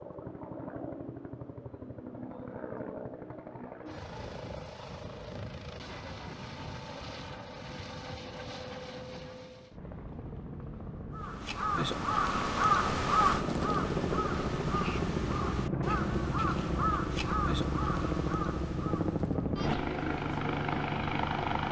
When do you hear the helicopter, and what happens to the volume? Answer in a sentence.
You can hear the helicopter from 0.0 to 21.6 s, getting louder.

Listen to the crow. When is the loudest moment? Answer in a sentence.
The loudest moment of the crow is at 13 seconds.